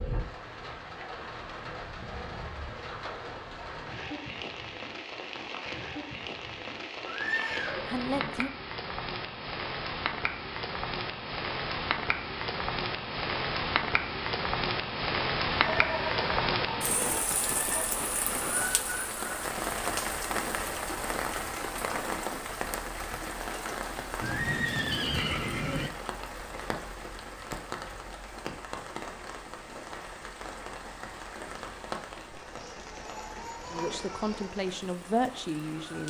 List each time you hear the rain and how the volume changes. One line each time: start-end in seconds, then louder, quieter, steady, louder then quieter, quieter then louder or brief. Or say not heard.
0.0-36.0 louder then quieter.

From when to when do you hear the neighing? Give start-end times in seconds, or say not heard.
7.0-8.4, 15.5-17.9, 24.2-25.9.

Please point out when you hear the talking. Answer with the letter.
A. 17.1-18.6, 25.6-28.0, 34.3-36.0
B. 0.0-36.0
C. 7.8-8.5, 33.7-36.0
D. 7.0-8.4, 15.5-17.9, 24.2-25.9
C.